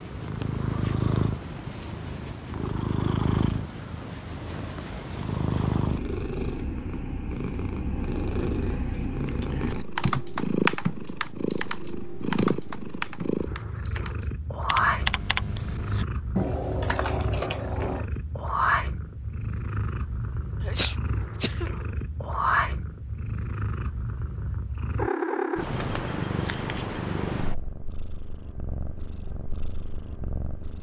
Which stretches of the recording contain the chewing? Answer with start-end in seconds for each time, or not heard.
not heard.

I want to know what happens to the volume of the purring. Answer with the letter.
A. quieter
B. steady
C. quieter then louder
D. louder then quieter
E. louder
B.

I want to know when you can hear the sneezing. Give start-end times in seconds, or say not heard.
20.6-21.7.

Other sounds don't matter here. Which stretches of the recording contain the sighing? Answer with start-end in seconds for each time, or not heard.
not heard.